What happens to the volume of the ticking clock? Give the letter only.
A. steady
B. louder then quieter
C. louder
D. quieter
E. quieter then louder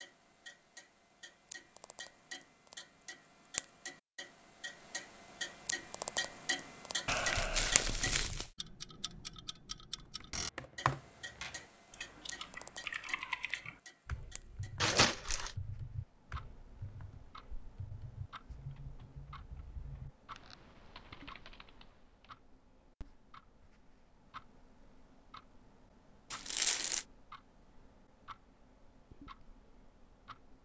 D.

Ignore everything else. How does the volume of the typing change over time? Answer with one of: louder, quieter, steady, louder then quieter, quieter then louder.
quieter.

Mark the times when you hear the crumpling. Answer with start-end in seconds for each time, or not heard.
7.0-8.5, 14.8-15.6, 26.3-27.1.